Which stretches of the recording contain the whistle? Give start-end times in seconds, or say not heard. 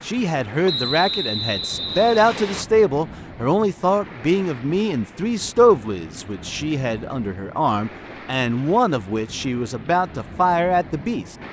0.7-2.6.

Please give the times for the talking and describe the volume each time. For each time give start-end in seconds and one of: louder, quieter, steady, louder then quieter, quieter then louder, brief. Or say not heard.
0.1-11.3 steady.